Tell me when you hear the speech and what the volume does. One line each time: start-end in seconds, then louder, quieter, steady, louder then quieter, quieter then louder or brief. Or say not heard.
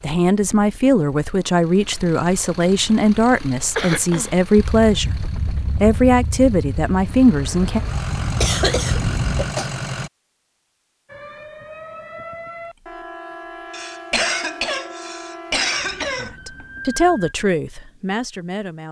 0.0-7.8 steady
16.1-18.8 brief.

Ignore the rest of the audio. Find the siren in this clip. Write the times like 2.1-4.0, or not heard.
11.1-17.4.